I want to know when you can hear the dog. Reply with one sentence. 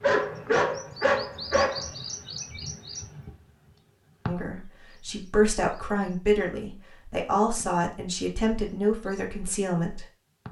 You can hear the dog from 0.0 to 1.9 s.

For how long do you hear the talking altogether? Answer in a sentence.
You can hear the talking for 6 seconds altogether.